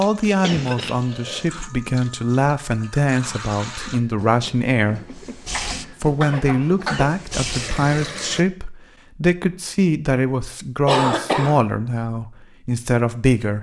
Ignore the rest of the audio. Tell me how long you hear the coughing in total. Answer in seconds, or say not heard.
4 s.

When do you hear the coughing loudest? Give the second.
11 s.